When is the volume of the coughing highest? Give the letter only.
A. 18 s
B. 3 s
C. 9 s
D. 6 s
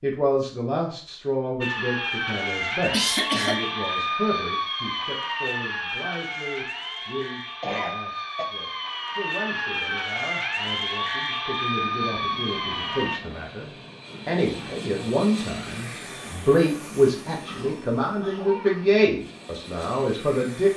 B.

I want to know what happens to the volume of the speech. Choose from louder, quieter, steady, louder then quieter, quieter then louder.
quieter then louder.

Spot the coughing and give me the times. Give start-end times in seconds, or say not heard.
2.9-3.6, 7.6-8.4, 17.3-18.9.